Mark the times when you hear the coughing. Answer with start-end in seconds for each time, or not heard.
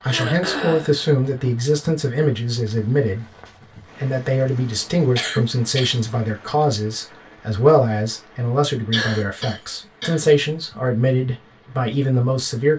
0.0-0.9, 5.2-6.0, 8.9-10.8.